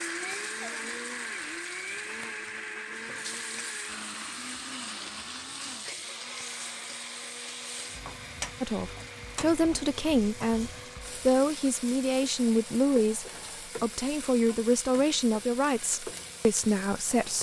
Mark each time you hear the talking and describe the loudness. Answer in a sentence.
You can hear the talking from 8.6 to 17.3 s, at a steady volume.